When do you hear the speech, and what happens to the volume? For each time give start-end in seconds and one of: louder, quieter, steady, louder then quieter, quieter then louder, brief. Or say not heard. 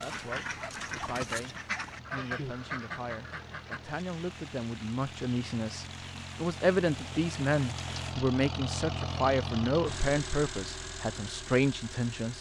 0.0-12.3 louder.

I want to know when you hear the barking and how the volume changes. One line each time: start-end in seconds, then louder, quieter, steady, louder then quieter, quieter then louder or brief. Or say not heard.
not heard.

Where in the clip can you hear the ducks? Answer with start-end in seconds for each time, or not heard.
0.0-3.8.